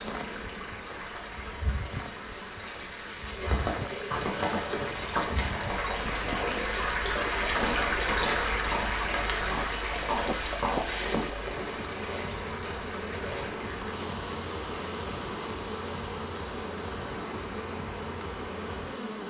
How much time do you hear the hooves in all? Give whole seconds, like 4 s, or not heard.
8 s.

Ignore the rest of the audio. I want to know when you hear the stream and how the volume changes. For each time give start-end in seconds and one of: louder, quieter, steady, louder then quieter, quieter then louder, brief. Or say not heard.
0.0-19.2 louder then quieter.